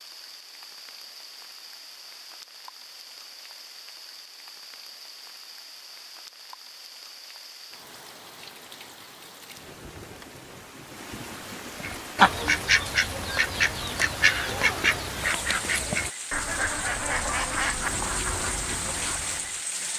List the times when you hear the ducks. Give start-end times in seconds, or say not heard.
11.8-19.6.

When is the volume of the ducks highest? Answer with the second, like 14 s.
12 s.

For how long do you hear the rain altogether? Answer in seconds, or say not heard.
20 s.